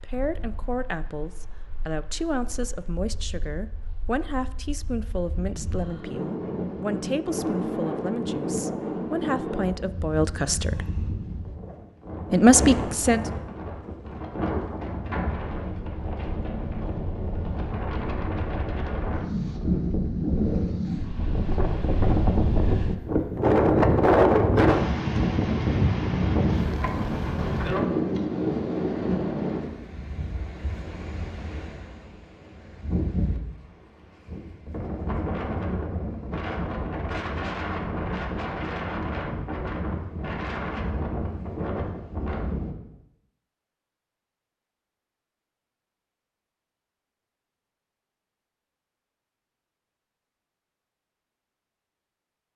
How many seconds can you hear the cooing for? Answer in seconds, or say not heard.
not heard.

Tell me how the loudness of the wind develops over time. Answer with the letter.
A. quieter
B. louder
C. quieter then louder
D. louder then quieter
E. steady
D.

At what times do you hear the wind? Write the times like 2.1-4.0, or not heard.
0.0-42.8.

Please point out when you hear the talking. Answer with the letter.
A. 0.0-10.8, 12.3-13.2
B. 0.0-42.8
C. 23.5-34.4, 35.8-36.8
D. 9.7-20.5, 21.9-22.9
A.